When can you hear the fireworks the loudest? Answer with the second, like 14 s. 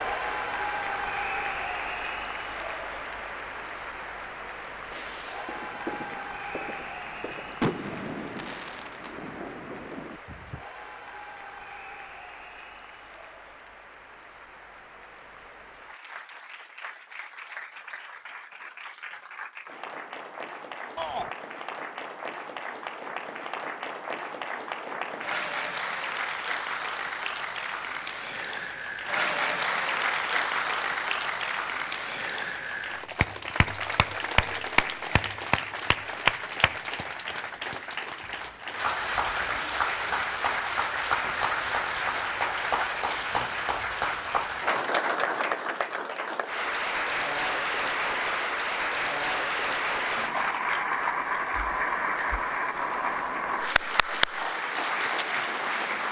8 s.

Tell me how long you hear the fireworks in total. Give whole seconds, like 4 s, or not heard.
6 s.